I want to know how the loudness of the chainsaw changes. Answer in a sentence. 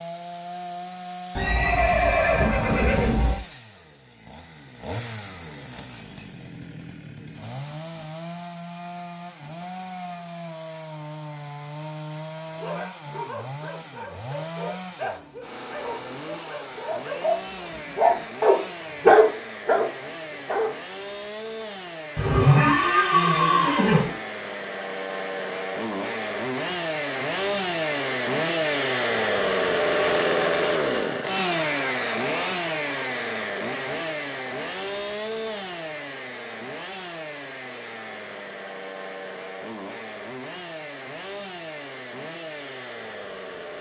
The loudness of the chainsaw goes up, then down.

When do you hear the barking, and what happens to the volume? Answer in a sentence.
You can hear the barking from 12.5 to 20.8 s, getting louder.